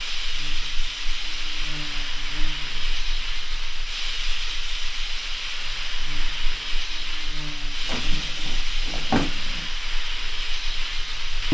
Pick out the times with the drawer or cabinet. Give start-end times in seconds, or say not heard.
7.8-9.7.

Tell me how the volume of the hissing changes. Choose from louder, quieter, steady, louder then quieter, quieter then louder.
steady.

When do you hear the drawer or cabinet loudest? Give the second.
9 s.